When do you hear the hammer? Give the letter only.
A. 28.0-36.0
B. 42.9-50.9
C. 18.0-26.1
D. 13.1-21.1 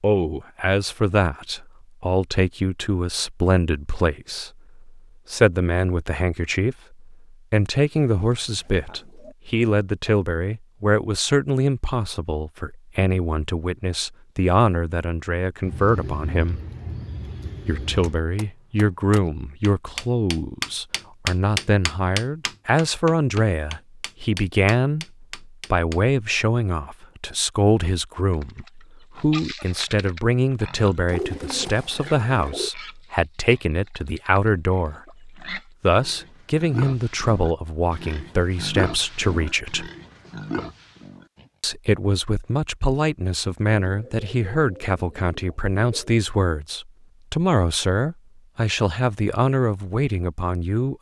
C.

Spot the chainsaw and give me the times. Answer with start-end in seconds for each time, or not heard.
not heard.